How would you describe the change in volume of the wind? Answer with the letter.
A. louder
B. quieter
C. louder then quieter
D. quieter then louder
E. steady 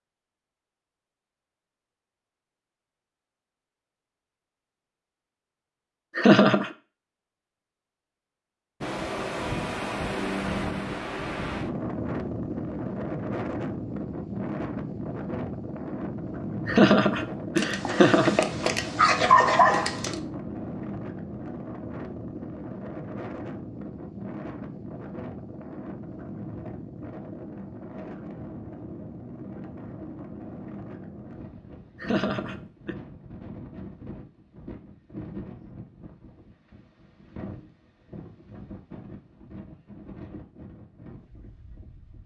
B.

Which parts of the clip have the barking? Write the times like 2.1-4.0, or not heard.
17.6-20.1.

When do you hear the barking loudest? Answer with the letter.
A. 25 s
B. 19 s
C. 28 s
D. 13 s
B.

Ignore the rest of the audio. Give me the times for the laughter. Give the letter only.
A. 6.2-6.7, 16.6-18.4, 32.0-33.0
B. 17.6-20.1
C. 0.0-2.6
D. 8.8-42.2
A.